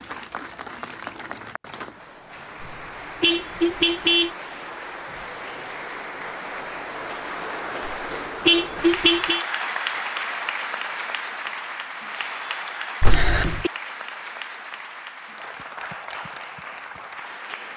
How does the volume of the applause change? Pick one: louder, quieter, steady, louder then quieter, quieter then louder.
louder then quieter.